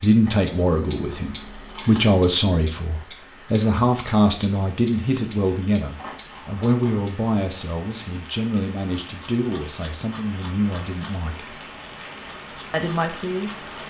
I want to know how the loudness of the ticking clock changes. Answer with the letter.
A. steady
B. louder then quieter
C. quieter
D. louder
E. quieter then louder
C.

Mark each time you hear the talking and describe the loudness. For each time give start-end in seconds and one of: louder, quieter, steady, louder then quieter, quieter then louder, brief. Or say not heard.
0.0-11.6 quieter
12.7-13.8 brief.